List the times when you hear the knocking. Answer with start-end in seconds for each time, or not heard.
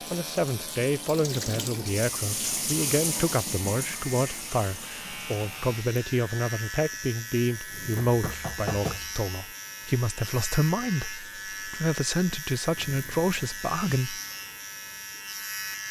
8.0-9.2.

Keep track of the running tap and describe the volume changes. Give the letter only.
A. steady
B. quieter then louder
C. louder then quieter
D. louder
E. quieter
C.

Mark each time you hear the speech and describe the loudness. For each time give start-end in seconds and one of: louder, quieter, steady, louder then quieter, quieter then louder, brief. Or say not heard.
0.1-14.2 steady.